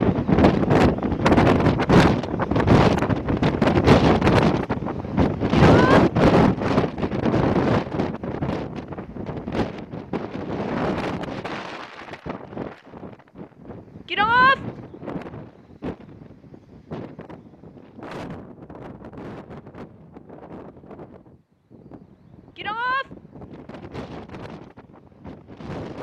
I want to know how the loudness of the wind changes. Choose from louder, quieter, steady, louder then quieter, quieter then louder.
quieter.